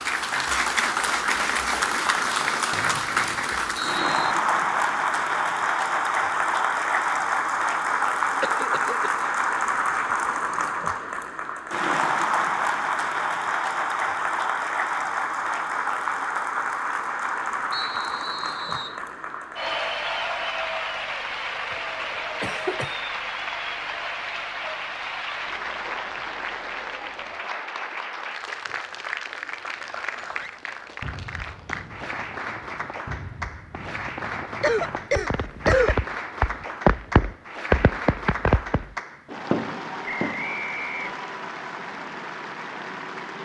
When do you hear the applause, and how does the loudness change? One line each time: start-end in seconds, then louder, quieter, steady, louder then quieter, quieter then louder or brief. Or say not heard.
0.0-43.4 quieter.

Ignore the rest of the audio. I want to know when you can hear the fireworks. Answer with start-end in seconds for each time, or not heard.
30.2-40.5.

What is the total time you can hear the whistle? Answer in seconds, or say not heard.
4 s.